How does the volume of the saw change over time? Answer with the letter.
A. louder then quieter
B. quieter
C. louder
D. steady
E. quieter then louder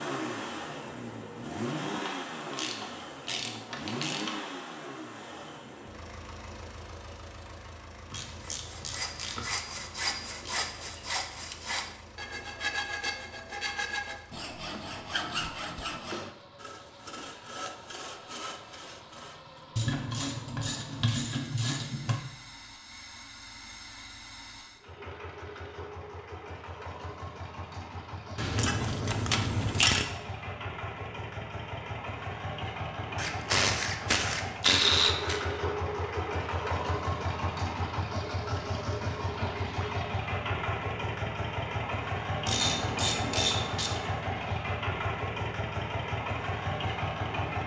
B.